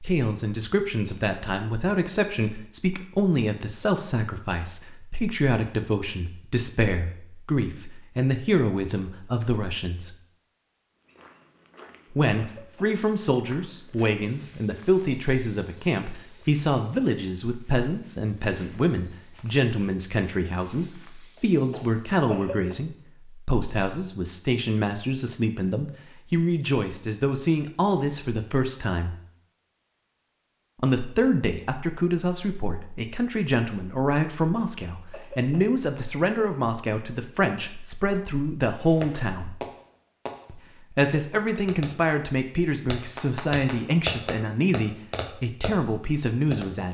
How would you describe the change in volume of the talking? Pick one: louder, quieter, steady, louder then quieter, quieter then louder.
steady.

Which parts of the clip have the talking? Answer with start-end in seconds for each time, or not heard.
0.0-10.2, 12.1-29.1, 30.8-39.6, 40.5-46.8.